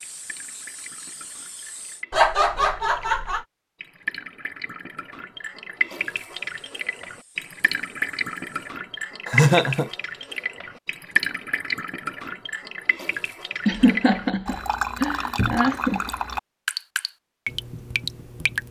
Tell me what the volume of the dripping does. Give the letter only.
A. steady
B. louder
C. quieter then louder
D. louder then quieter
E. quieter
B.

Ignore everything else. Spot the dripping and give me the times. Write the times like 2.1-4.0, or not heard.
0.0-18.6.